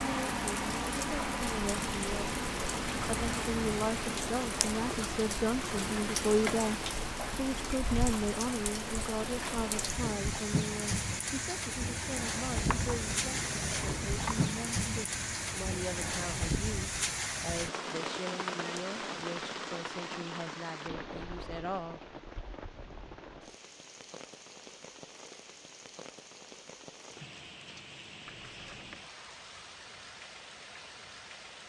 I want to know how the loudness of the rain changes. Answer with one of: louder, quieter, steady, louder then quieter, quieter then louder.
quieter.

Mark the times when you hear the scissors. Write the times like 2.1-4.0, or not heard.
3.0-3.9, 12.5-14.6, 28.2-29.0.